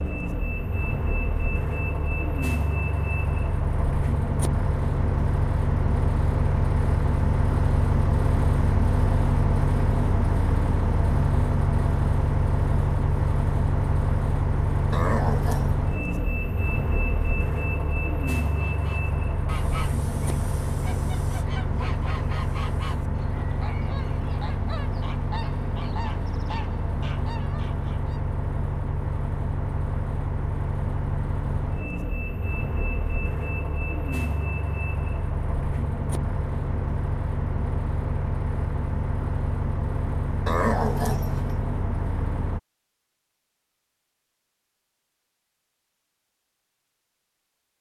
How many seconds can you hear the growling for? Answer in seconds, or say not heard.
2 s.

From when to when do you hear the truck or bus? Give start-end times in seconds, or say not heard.
0.0-42.6.